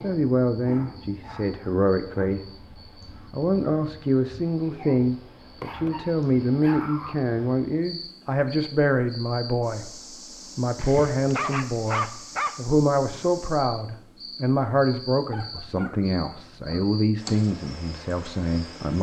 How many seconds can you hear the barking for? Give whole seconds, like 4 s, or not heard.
7 s.